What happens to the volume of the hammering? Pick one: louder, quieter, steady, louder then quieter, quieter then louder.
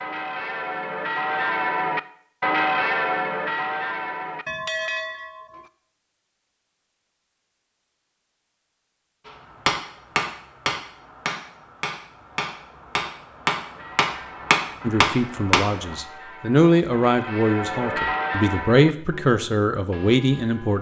quieter then louder.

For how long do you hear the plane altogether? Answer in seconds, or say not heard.
not heard.